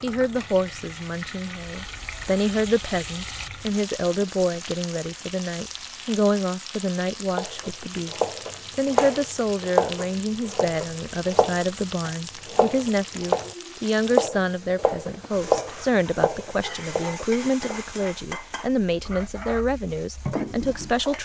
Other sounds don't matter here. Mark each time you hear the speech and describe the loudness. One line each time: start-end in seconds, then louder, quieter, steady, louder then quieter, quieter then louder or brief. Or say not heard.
0.0-21.2 steady.